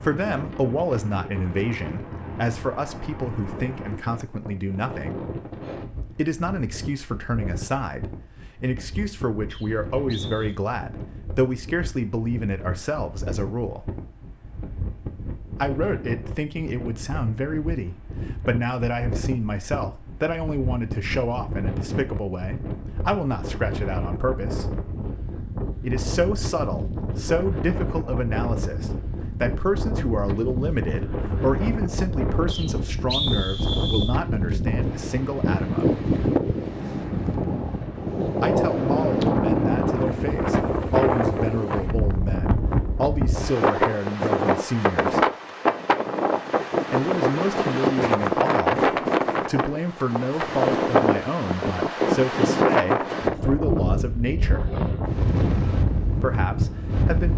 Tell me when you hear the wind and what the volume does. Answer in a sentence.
You can hear the wind from 0.0 to 57.3 s, getting louder.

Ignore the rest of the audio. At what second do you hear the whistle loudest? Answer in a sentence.
The volume of the whistle peaks at 33 seconds.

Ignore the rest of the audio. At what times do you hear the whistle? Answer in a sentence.
You can hear the whistle from 9.5 to 10.6 s and from 32.5 to 34.1 s.